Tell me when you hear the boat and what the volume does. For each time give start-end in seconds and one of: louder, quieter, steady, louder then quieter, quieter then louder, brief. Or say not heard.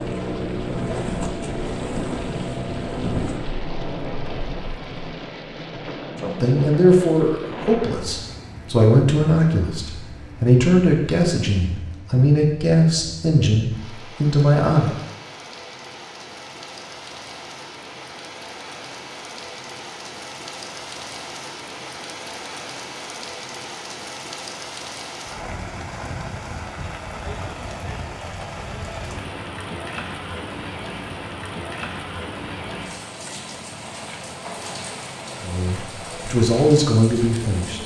0.0-5.1 quieter.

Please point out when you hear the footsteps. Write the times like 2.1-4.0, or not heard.
not heard.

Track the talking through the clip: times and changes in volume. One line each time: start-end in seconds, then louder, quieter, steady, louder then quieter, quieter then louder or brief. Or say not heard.
6.2-14.9 steady
35.4-37.8 brief.